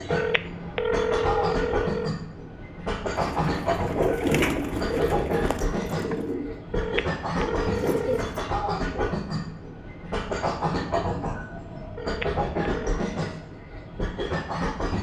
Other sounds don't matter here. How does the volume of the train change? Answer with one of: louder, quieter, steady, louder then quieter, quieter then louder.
steady.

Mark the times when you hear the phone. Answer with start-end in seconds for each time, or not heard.
0.1-2.1, 6.7-8.3, 11.9-12.9.